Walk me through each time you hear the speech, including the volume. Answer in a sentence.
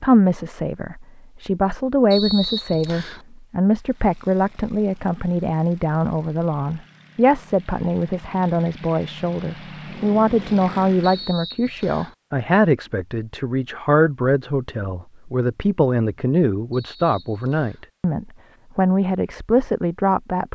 You can hear the speech from 0.0 to 20.5 s, at a steady volume.